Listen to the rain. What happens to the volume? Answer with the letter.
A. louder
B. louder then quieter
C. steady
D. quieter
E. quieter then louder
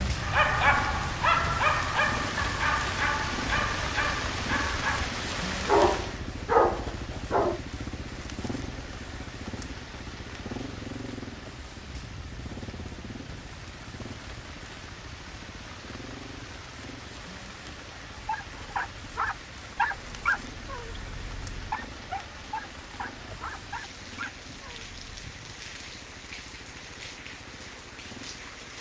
D.